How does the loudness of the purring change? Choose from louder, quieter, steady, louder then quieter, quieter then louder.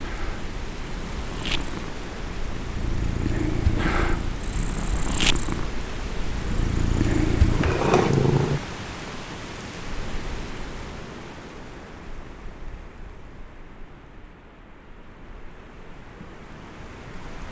louder.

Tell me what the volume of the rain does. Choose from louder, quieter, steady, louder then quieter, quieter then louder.
quieter.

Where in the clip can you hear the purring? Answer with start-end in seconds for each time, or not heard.
0.0-8.6.